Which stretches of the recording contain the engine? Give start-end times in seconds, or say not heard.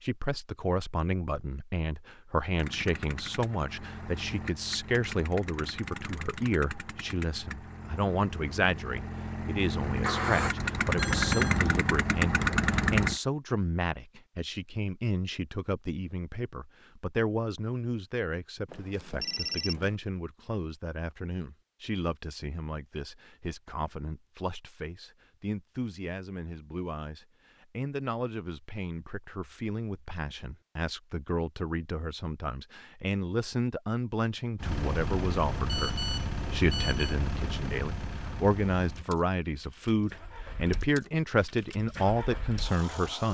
2.5-13.2, 34.5-43.2.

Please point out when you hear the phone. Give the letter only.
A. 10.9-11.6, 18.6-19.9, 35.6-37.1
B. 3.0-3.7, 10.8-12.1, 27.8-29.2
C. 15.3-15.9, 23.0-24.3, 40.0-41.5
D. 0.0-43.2
A.